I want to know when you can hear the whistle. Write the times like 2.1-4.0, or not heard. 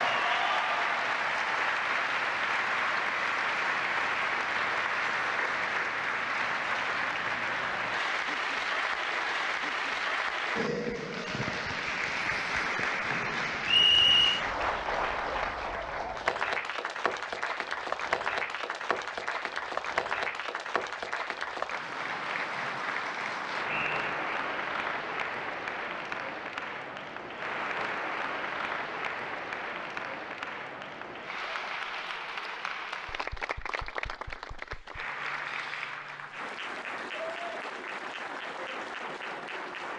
13.7-14.4, 23.6-24.2.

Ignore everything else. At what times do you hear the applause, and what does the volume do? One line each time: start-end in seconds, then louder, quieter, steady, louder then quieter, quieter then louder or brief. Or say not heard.
0.0-39.9 quieter.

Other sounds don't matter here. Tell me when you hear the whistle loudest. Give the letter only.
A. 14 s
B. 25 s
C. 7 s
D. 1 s
A.